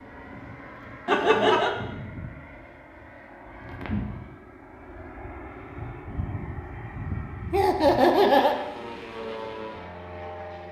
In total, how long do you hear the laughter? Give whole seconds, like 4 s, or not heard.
2 s.